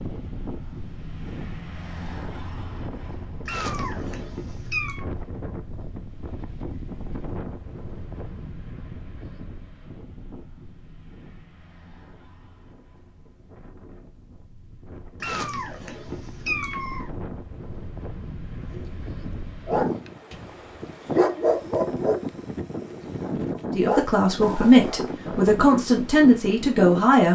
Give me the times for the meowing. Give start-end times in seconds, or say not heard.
3.5-5.0, 15.2-17.1.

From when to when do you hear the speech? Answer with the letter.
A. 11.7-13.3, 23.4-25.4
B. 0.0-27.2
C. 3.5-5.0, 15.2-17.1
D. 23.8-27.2
D.